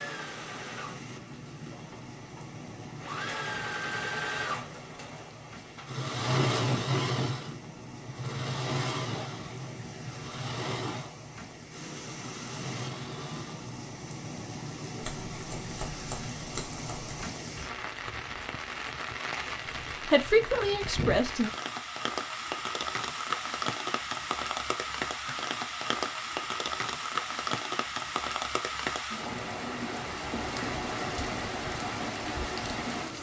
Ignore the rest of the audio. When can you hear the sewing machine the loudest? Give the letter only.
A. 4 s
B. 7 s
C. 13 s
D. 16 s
B.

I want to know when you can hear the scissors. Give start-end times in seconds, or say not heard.
15.0-17.2.